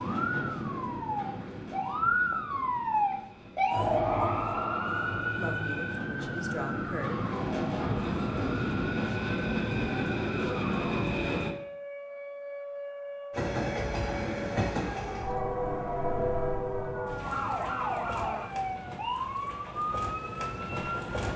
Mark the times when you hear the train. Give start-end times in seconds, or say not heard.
0.0-11.5, 13.3-21.3.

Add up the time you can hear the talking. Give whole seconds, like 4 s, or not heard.
2 s.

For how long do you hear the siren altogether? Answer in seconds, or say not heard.
21 s.